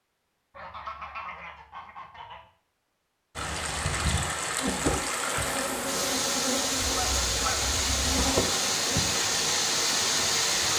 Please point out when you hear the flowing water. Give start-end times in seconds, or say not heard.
3.4-10.7.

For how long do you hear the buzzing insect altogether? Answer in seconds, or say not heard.
5 s.